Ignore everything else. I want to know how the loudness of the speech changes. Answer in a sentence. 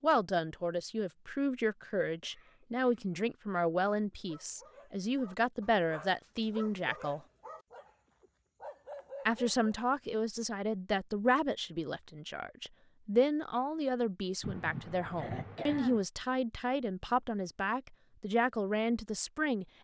The loudness of the speech stays about the same.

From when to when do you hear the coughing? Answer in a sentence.
The coughing can be heard from 2.2 to 2.8 s and from 14.4 to 16.1 s.